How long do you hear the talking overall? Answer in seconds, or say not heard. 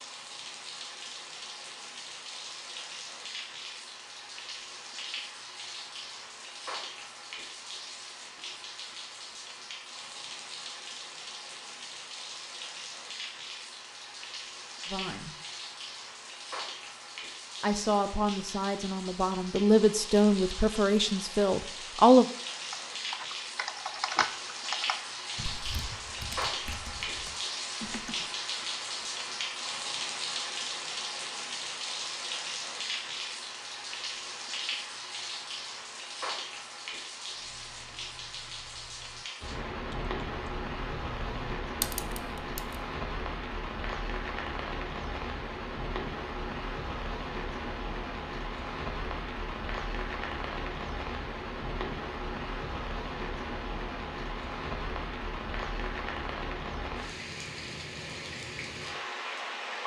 5 s.